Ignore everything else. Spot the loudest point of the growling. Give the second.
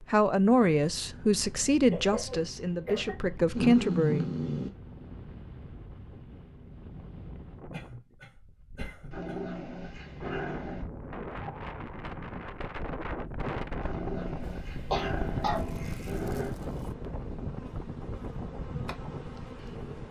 4 s.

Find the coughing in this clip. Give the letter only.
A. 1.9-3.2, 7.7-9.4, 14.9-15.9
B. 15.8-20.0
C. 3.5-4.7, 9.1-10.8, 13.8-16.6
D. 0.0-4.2
A.